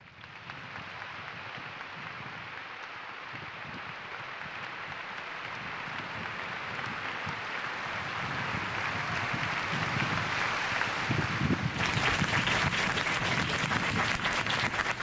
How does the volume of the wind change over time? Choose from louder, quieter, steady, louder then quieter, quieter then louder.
louder.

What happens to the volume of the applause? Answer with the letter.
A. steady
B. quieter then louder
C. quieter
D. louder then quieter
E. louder
E.